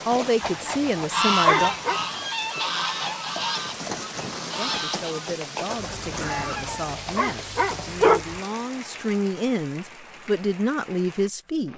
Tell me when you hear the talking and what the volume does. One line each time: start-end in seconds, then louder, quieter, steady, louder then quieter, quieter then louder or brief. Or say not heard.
0.1-1.8 brief
4.5-11.7 louder.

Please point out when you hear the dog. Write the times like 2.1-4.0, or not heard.
0.4-2.0, 6.1-8.2.